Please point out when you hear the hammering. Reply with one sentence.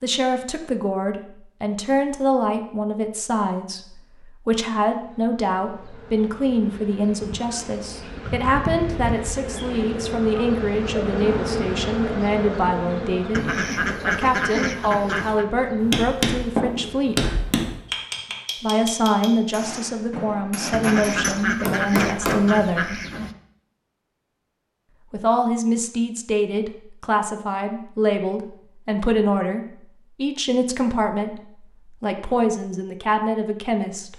You can hear the hammering from 15.6 to 22.4 s.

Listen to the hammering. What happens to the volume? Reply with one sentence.
The loudness of the hammering goes down, then up.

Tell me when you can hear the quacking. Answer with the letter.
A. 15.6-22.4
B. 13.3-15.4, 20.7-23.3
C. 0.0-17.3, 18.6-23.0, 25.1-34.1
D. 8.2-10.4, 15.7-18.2
B.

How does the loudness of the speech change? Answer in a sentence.
The volume of the speech stays about the same.